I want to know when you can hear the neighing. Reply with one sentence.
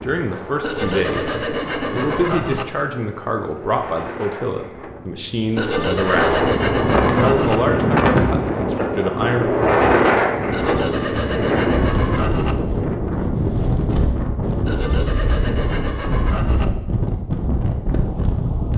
The neighing can't be heard in this clip.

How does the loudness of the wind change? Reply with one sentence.
The loudness of the wind goes up, then down.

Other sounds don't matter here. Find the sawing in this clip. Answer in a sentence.
The sawing can be heard from 0.6 to 2.6 s, from 5.5 to 7.6 s, from 10.5 to 12.6 s and from 14.7 to 16.6 s.